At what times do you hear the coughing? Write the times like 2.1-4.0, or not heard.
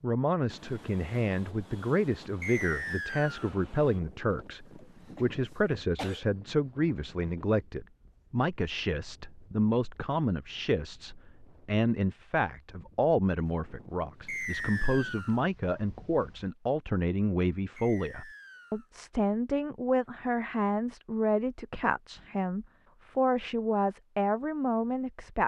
4.8-6.3.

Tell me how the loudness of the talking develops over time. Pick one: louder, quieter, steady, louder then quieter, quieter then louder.
steady.